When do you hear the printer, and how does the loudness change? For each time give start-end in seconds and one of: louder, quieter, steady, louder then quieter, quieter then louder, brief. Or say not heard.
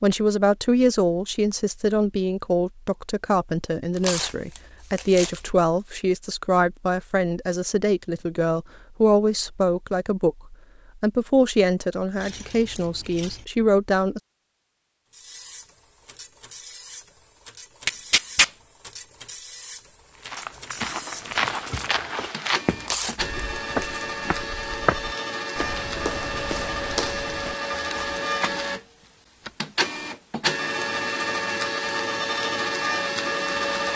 15.1-33.9 louder.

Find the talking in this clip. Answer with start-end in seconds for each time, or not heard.
0.0-14.2.